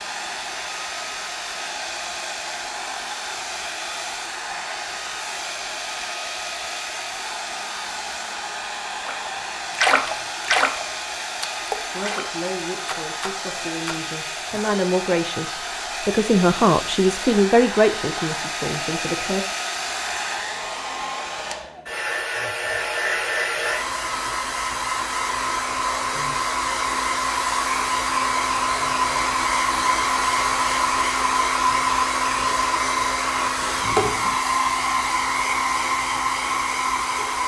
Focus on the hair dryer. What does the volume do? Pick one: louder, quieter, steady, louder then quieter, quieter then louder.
louder.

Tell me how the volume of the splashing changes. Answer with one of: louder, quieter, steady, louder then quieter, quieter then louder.
quieter.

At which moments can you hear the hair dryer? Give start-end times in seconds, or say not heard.
0.0-37.4.